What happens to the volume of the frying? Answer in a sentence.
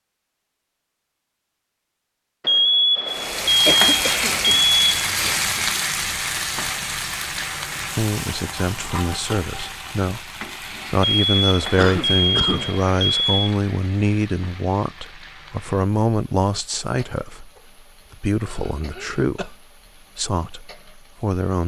The loudness of the frying goes down.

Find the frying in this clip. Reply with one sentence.
You can hear the frying from 3.0 to 21.6 s.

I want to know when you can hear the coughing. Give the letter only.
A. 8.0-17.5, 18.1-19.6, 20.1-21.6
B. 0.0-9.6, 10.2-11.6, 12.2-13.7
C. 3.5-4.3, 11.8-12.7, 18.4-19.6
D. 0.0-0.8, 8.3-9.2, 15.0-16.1
C.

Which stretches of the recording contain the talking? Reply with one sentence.
The talking can be heard from 8.0 to 17.5 s, from 18.1 to 19.6 s and from 20.1 to 21.6 s.